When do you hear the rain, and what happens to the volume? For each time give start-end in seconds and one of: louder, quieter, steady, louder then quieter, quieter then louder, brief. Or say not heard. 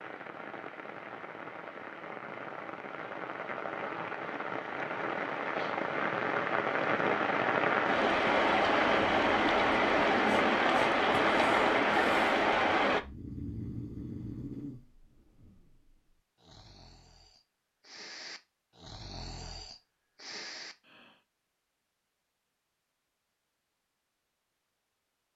0.0-13.0 louder.